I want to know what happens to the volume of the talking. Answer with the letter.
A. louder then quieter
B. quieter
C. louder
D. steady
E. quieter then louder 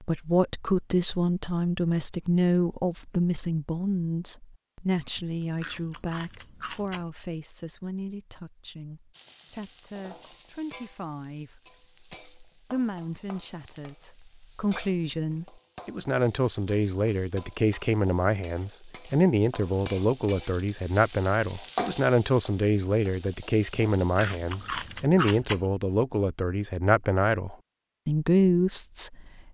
E.